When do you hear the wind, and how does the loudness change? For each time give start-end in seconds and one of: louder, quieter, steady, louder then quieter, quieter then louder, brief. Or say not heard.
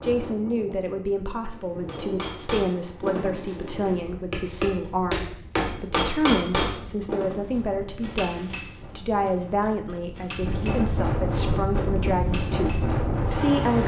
0.0-13.8 louder.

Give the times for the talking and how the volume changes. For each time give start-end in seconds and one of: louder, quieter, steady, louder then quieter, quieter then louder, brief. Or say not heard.
0.0-13.8 steady.